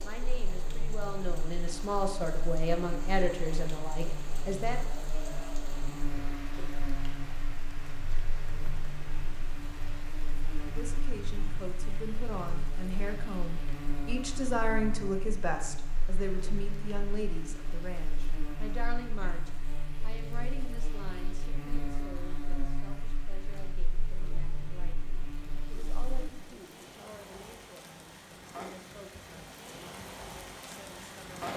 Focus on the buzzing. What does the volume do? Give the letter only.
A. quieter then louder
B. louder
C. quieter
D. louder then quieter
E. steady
E.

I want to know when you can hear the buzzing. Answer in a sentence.
The buzzing can be heard from 0.0 to 26.3 s.